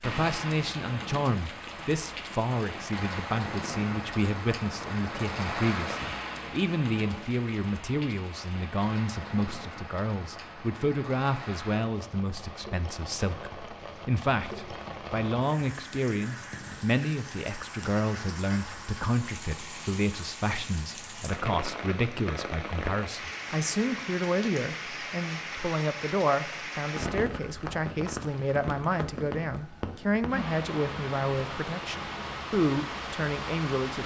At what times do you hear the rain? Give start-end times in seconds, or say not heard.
0.0-34.0.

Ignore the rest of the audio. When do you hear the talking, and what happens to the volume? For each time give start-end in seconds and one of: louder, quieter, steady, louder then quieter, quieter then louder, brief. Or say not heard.
0.0-34.0 steady.